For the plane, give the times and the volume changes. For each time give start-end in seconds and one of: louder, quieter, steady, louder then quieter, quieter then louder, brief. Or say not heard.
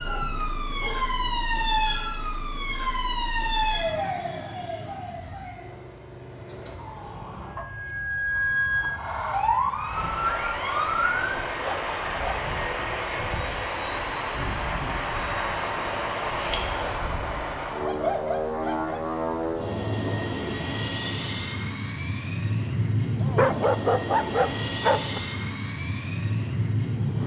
0.1-27.2 louder.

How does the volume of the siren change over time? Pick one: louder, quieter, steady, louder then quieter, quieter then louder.
quieter then louder.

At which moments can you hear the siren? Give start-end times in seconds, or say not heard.
0.0-11.6.